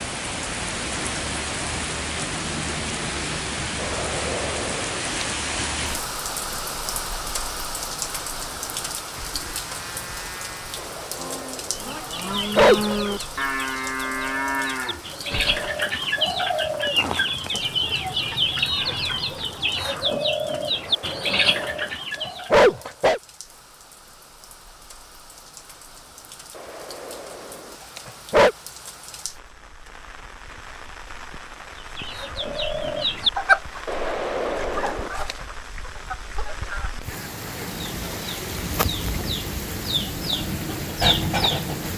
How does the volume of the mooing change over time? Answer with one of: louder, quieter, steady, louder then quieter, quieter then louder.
louder.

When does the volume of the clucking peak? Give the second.
33 s.